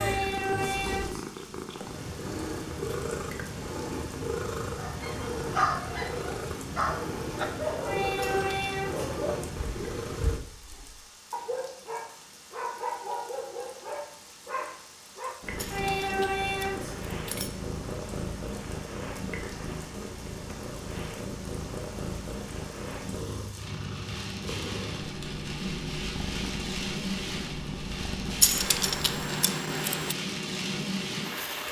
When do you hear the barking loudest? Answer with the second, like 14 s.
6 s.